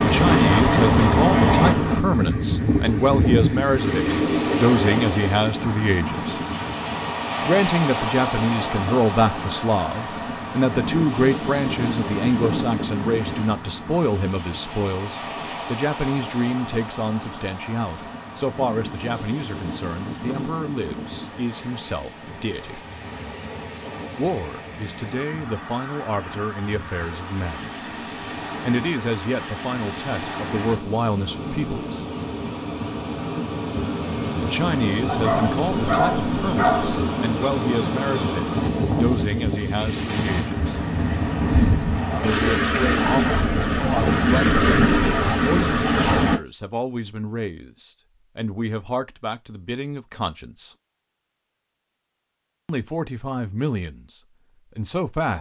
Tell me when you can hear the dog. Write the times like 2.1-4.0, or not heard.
35.0-37.0.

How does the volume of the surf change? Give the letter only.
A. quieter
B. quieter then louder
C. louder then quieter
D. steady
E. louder
B.